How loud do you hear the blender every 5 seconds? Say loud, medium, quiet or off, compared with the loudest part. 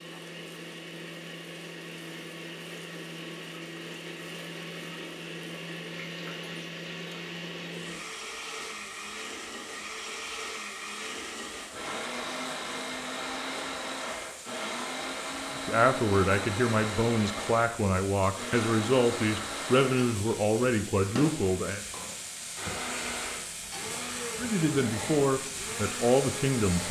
medium, loud, loud, loud, loud, loud.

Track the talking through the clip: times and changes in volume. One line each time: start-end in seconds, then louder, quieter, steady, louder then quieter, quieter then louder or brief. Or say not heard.
15.5-21.8 steady
24.4-26.8 brief.